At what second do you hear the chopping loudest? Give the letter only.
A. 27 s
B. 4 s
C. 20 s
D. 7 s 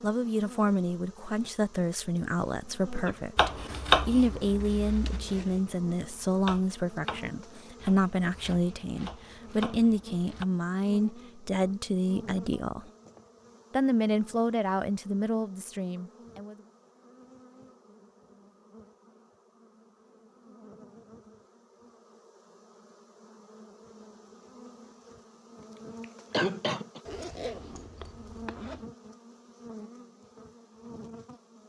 B.